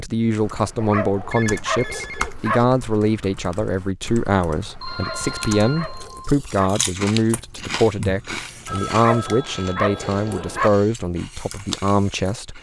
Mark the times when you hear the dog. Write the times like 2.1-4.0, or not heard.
0.6-2.6, 4.7-6.7, 8.7-10.7.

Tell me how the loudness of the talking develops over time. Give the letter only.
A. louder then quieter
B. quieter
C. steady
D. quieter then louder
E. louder
C.